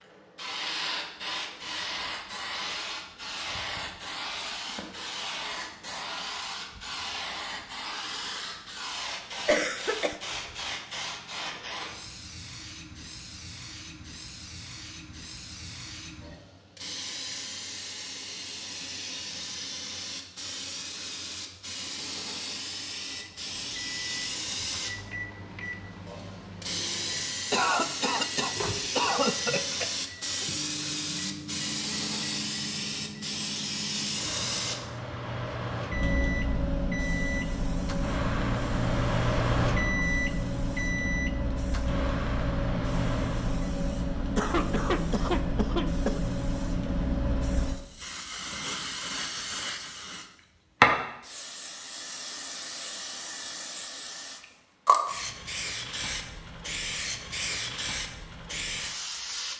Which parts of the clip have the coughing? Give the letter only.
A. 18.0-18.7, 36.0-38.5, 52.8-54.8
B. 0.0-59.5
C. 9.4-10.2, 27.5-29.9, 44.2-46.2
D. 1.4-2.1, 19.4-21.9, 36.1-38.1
C.